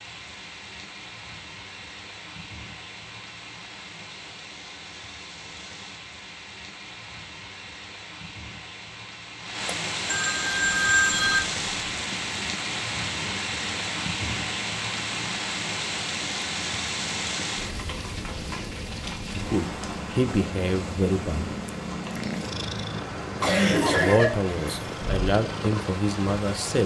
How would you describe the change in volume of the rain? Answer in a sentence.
The loudness of the rain goes up, then down.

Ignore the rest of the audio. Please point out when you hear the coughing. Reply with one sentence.
You can hear the coughing from 23.4 to 25.3 s.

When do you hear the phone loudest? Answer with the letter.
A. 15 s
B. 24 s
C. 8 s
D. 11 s
D.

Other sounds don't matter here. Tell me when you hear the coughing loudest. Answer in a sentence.
The loudest moment of the coughing is at 24 seconds.